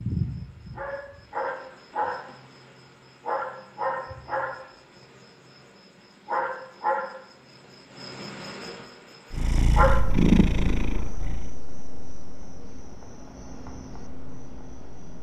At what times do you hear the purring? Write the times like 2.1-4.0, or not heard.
9.3-11.6.